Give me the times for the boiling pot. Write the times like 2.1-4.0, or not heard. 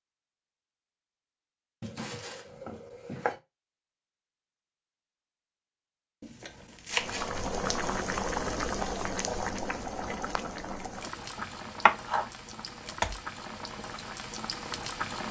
6.9-15.2.